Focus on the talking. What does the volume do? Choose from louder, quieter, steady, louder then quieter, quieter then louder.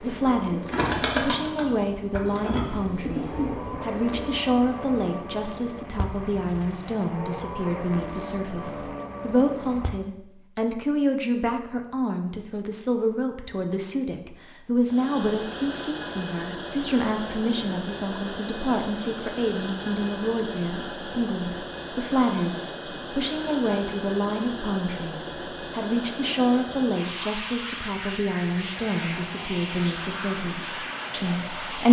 steady.